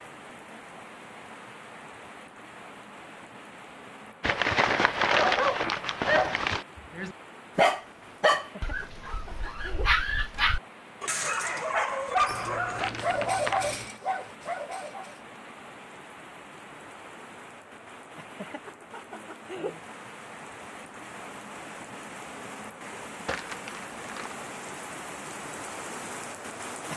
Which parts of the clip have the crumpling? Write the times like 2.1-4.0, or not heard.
4.2-6.7, 12.2-13.9, 23.2-24.4.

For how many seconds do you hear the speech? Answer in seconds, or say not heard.
not heard.